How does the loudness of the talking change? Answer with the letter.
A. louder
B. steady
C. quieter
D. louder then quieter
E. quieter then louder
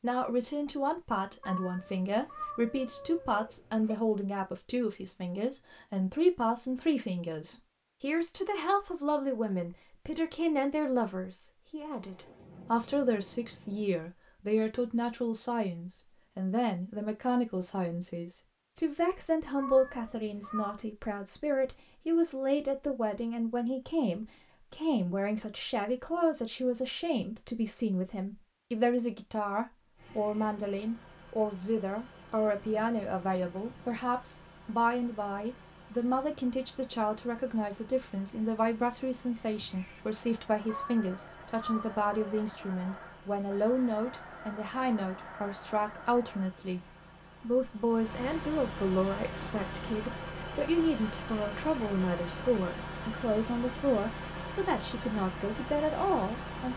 B.